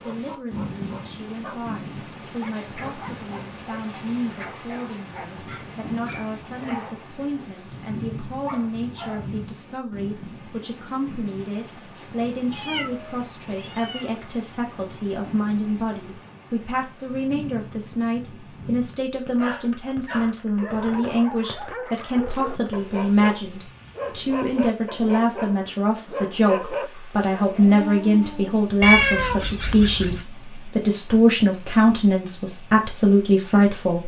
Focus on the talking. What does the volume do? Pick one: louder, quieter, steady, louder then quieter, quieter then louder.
louder.